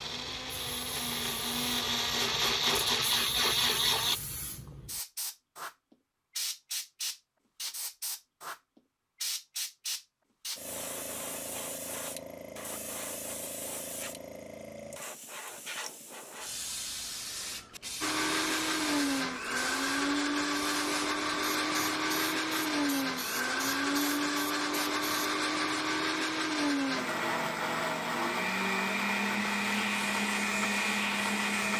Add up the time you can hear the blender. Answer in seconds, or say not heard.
18 s.